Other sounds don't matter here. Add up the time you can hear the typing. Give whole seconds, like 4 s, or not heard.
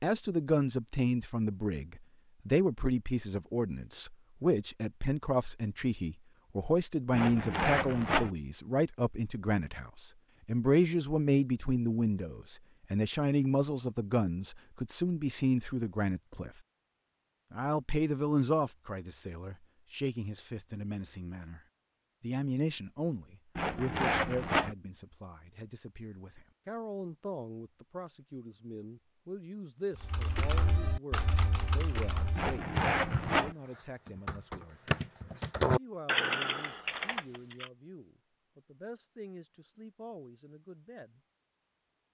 8 s.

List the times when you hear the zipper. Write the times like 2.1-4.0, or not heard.
7.1-8.3, 23.6-24.8, 32.4-33.5.